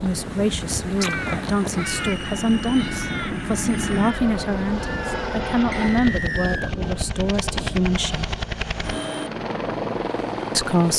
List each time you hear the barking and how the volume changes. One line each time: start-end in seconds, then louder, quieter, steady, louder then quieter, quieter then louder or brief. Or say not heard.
not heard.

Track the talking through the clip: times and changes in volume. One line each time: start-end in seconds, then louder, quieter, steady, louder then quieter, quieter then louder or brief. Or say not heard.
0.0-8.3 steady
10.5-10.9 brief.